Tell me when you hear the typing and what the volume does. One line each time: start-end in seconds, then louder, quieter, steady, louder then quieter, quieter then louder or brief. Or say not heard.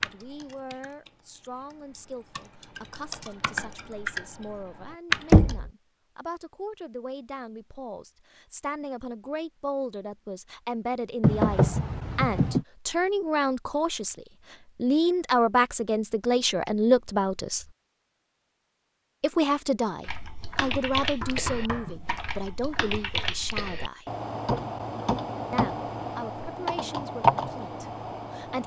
0.0-5.5 quieter then louder
20.1-28.6 louder.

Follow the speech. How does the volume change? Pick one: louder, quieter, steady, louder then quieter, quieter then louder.
louder then quieter.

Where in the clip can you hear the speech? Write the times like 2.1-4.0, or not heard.
0.0-17.6, 19.2-24.1, 25.5-28.6.